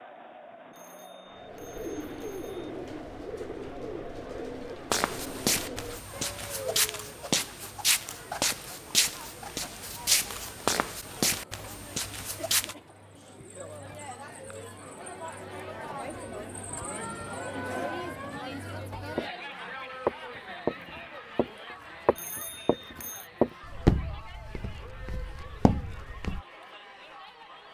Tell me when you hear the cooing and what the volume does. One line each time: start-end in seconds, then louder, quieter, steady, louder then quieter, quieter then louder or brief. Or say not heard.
1.3-7.2 steady.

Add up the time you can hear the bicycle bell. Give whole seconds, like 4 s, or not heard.
3 s.